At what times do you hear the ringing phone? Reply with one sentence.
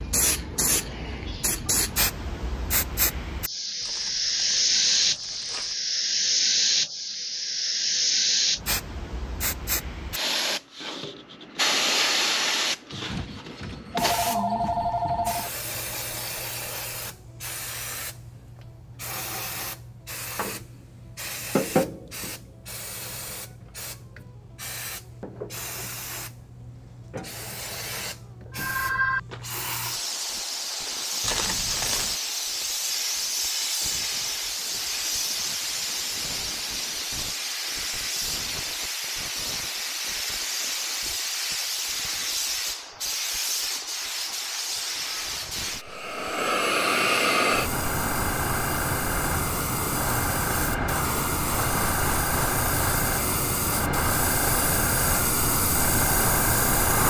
The ringing phone can be heard from 12.9 to 15.5 s, from 28.5 to 29.4 s and from 45.0 to 46.7 s.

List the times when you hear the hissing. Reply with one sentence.
The hissing can be heard from 0.0 to 57.0 s.